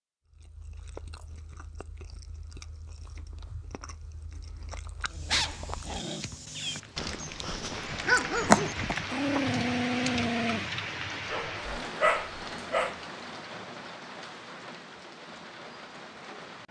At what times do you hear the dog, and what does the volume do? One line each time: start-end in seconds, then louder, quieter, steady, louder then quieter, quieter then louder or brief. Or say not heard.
5.1-10.6 louder
11.2-13.0 brief.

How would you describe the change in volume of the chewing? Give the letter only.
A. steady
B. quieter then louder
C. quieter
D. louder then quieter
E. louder
E.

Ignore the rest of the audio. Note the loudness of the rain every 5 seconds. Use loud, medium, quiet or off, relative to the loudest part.
off, loud, loud, medium.